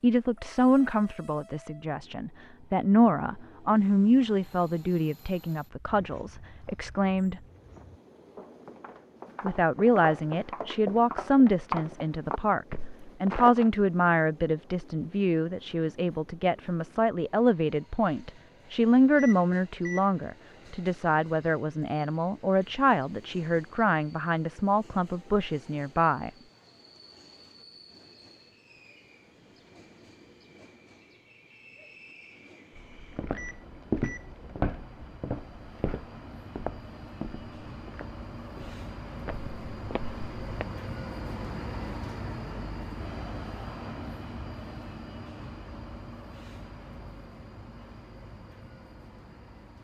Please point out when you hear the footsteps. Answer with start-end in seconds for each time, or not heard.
5.8-13.7, 32.8-40.6.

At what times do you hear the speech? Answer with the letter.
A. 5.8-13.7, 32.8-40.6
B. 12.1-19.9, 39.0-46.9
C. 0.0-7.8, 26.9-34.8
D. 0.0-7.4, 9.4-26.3
D.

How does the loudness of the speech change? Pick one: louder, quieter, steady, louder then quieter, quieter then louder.
steady.